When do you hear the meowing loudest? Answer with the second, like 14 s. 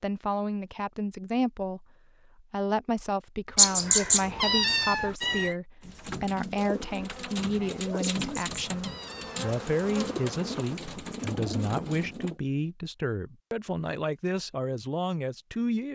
4 s.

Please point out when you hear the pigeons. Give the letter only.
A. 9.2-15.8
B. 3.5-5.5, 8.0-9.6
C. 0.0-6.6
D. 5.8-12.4
D.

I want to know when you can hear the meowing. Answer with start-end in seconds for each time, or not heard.
3.5-5.5, 8.0-9.6.